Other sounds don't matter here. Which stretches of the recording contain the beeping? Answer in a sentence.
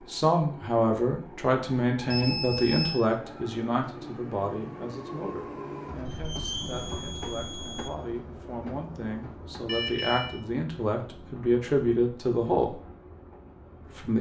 You can hear the beeping from 2.1 to 3.0 s, from 6.0 to 7.9 s and from 9.7 to 10.3 s.